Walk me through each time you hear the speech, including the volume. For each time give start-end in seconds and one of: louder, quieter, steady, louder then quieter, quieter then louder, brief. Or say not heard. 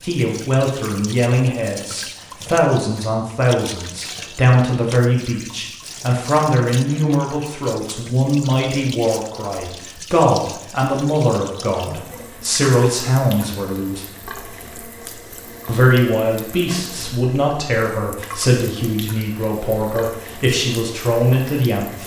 0.0-14.1 steady
15.7-22.0 steady.